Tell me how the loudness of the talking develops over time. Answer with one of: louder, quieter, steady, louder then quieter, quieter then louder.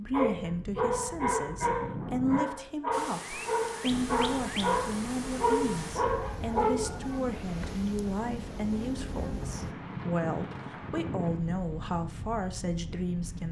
steady.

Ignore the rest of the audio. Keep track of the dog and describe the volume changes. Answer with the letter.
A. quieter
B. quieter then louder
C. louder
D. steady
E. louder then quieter
D.